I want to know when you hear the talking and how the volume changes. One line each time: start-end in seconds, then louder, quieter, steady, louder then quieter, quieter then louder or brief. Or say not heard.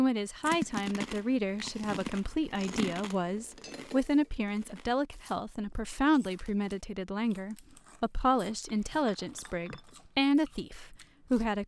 0.0-11.6 steady.